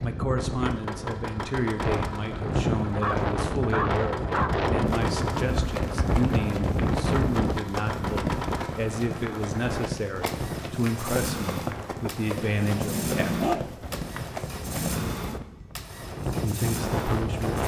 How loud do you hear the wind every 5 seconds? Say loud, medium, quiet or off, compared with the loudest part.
loud, loud, medium, loud.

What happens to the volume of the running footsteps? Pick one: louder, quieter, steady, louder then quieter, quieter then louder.
steady.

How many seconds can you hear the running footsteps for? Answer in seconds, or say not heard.
10 s.